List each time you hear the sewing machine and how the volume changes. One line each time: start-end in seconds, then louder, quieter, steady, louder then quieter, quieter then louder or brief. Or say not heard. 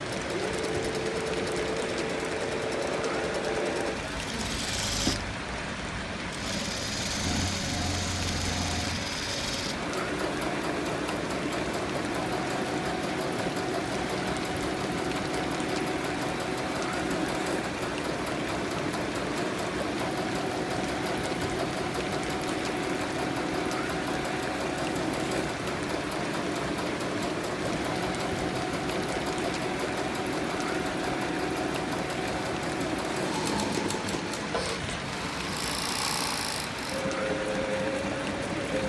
0.0-38.8 steady.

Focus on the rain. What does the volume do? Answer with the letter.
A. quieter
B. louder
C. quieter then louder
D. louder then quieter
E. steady
E.